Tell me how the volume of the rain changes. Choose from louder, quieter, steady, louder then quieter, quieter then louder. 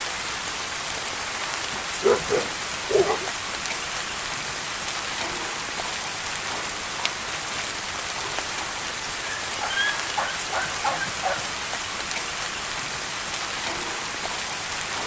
steady.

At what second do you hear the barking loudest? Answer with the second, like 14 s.
2 s.